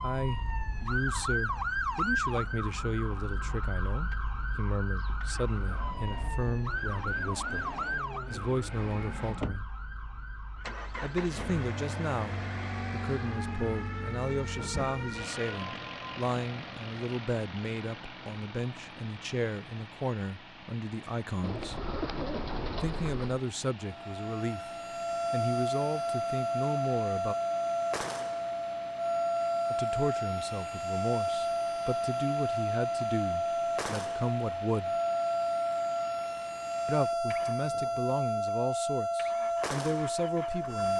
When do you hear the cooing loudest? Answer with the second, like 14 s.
22 s.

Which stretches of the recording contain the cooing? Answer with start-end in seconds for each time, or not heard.
21.4-23.4.